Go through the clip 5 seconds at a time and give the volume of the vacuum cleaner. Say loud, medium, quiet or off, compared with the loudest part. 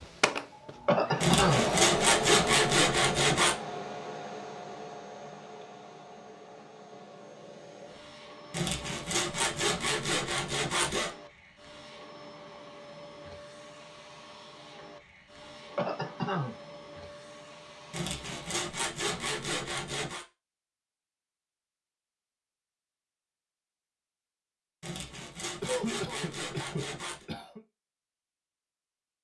loud, quiet, quiet, quiet, off, off.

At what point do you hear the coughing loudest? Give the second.
1 s.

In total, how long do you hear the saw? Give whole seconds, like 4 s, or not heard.
10 s.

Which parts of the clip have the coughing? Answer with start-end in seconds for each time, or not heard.
0.8-1.6, 15.8-16.6, 25.6-27.6.